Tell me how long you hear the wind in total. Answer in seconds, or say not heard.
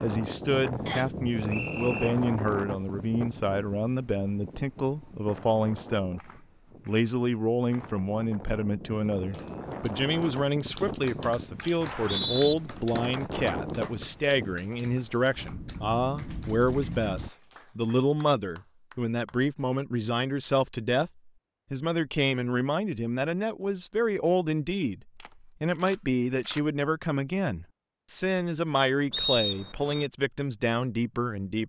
17 s.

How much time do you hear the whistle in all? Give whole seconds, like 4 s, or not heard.
3 s.